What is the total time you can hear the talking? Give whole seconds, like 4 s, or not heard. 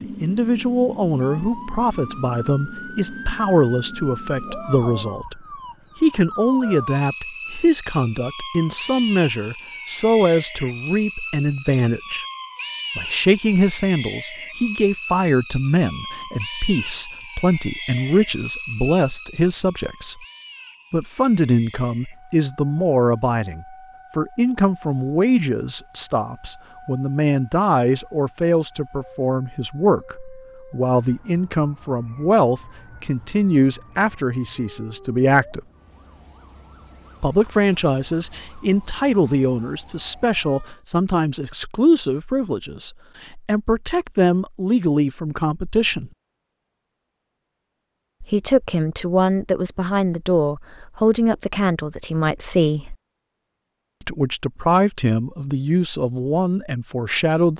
51 s.